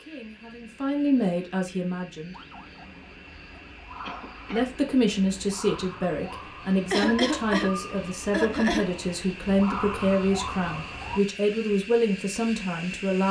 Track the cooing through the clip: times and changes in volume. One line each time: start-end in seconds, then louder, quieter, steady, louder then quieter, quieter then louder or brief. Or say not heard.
not heard.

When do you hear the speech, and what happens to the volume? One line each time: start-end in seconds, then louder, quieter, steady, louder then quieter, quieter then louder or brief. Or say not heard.
0.0-2.4 brief
4.5-13.2 steady.